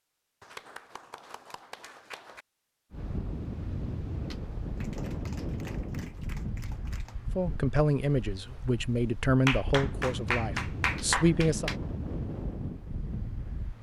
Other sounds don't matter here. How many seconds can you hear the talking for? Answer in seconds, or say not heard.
4 s.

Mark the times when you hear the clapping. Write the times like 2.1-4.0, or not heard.
0.4-2.5, 4.8-7.2, 9.4-11.8.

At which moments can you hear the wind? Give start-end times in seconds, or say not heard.
2.9-13.7.